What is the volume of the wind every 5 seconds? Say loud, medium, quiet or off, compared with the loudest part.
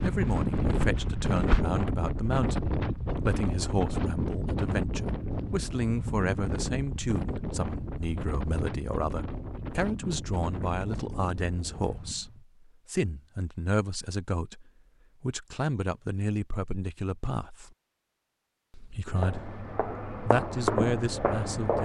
loud, medium, medium, off, off.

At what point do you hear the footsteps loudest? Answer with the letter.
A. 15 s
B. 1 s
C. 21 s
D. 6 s
C.